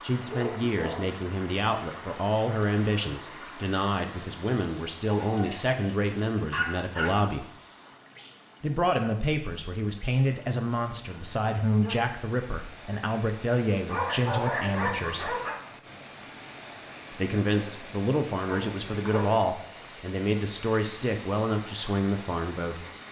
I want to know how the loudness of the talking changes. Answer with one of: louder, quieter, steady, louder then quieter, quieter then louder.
steady.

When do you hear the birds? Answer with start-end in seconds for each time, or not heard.
not heard.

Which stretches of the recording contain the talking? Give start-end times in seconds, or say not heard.
0.0-7.5, 8.6-15.4, 17.1-22.9.